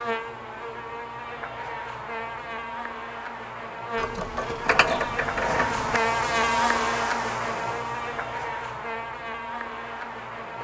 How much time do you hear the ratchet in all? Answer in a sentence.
You can hear the ratchet for 2 seconds altogether.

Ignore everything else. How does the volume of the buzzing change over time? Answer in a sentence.
The volume of the buzzing goes up, then down.